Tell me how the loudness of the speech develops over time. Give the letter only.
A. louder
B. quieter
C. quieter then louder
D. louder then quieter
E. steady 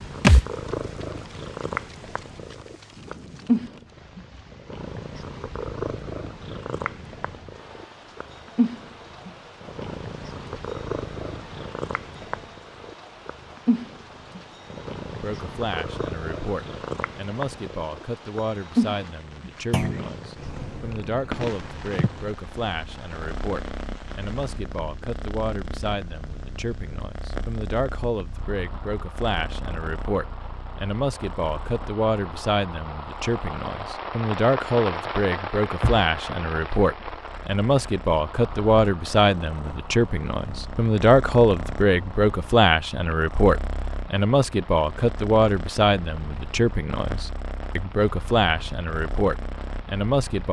A.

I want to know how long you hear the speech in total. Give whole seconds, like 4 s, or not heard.
35 s.